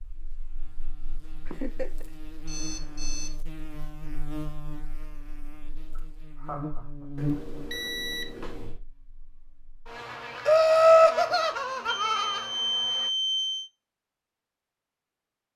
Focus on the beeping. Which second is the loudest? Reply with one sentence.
The volume of the beeping peaks at 13 seconds.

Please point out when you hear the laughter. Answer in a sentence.
You can hear the laughter from 1.4 to 2.0 s, from 6.0 to 7.0 s and from 10.4 to 12.4 s.